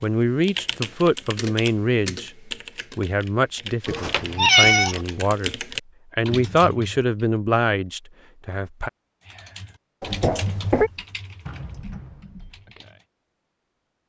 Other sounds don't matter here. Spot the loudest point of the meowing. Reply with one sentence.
The loudest moment of the meowing is at 5 seconds.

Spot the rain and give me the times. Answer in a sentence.
You can't hear the rain here.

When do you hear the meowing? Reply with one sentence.
The meowing can be heard from 3.9 to 5.0 s and from 10.0 to 10.9 s.